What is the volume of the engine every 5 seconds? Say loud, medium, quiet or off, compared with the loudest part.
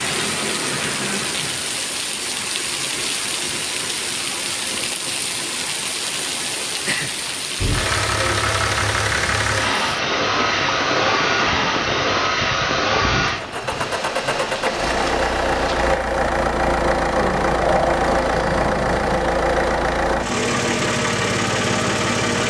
off, loud, loud, loud, loud.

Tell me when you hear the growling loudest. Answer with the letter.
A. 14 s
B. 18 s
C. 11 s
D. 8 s
B.